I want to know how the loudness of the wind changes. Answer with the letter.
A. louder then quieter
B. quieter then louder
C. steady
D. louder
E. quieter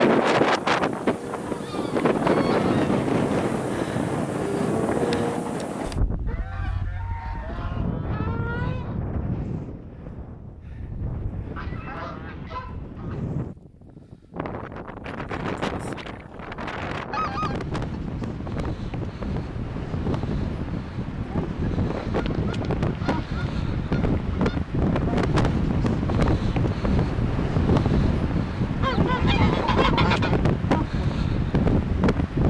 B.